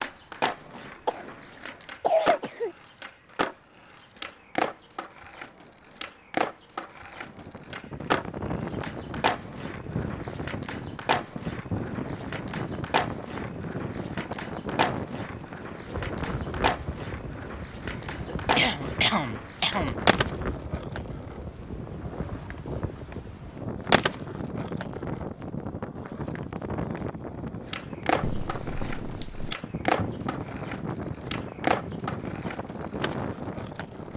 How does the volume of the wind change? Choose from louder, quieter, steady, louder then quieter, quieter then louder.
steady.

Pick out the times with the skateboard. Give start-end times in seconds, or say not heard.
0.0-34.1.